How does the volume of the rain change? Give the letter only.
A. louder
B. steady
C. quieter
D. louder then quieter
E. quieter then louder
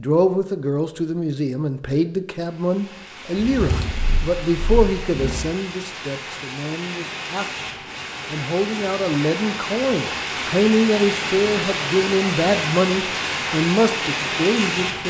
A.